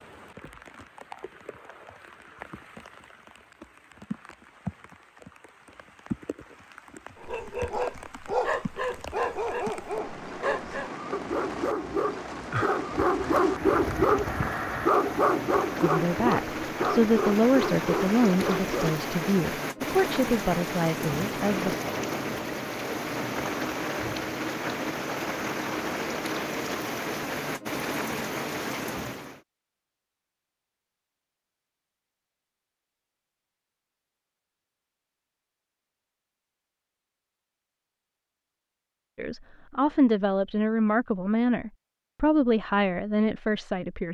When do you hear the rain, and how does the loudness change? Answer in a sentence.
You can hear the rain from 0.0 to 29.4 s, getting louder.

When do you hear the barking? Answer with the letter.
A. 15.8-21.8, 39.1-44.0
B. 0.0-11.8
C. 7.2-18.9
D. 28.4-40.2
C.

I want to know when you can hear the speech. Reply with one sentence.
You can hear the speech from 15.8 to 21.8 s and from 39.1 to 44.0 s.